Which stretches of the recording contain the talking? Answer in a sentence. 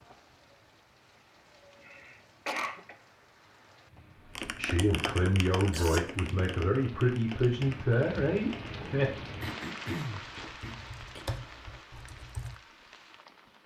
The talking can be heard from 4.2 to 9.1 s.